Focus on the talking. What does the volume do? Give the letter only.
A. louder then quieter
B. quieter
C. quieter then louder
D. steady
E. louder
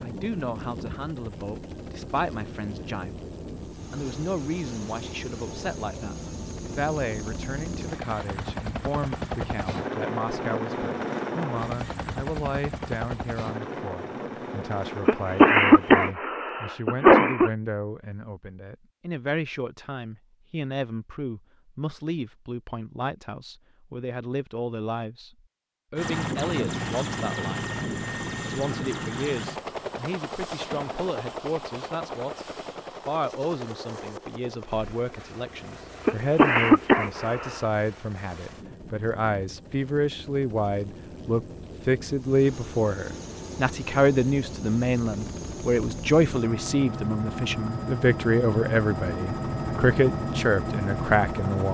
E.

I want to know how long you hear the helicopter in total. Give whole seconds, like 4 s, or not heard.
42 s.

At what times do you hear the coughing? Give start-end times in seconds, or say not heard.
15.1-17.5, 36.0-37.6.